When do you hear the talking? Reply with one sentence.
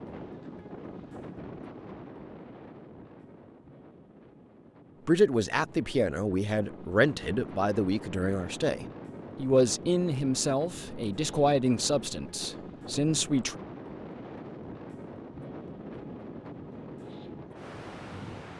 The talking can be heard from 5.0 to 13.6 s.